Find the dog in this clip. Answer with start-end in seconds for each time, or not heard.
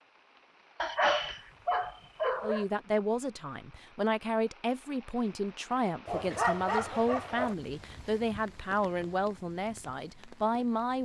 0.8-2.6, 6.0-7.5.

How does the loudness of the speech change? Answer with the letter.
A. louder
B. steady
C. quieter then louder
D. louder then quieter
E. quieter
B.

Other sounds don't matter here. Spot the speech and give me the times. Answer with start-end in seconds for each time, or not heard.
2.4-10.9.